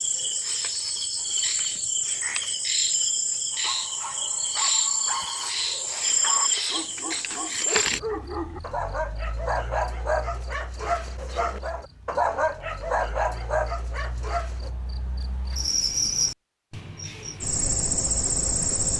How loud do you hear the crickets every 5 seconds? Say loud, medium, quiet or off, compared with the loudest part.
loud, loud, quiet, loud.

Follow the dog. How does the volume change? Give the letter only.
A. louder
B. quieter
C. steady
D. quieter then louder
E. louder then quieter
A.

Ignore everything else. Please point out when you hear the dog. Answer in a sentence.
You can hear the dog from 3.5 to 14.7 s.